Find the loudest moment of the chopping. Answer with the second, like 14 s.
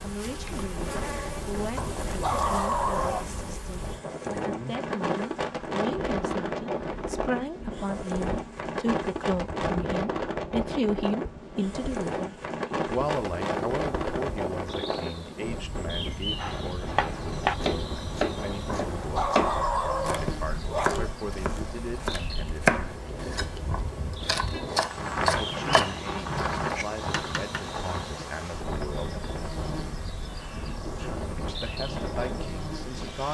23 s.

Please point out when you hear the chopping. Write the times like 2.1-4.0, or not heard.
16.4-27.6.